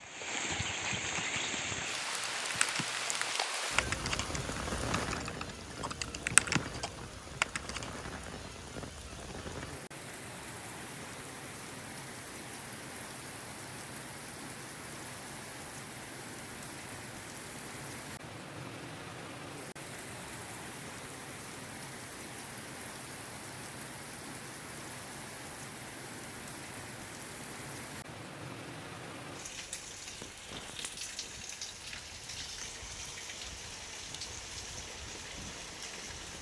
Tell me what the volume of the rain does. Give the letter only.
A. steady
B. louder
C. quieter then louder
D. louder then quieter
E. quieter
E.